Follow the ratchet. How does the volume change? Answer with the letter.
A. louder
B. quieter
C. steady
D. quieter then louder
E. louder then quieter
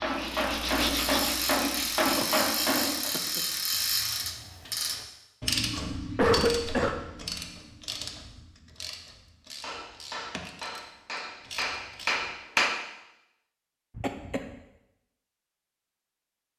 B.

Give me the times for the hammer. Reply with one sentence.
You can hear the hammer from 0.0 to 3.1 s and from 9.6 to 12.8 s.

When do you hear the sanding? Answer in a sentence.
The sanding can be heard from 0.0 to 2.1 s.